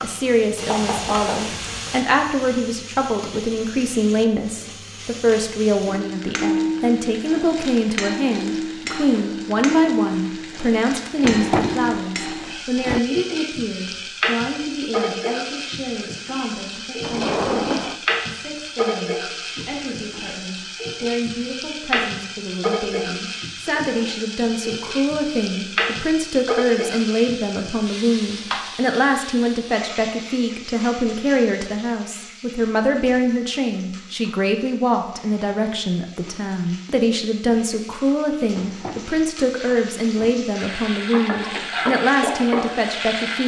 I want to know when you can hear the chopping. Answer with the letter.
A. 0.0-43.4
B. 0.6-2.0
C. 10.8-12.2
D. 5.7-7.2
B.